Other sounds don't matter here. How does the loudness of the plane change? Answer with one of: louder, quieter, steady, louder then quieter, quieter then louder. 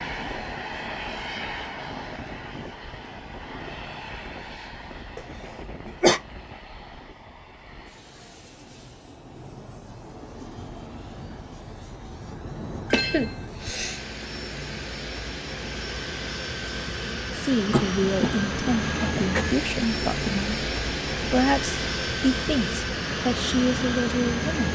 quieter then louder.